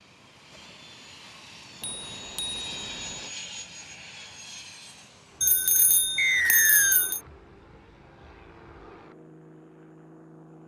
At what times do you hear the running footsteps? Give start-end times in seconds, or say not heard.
not heard.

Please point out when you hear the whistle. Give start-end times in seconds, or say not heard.
6.2-7.0.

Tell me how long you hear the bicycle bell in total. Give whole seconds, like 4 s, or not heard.
3 s.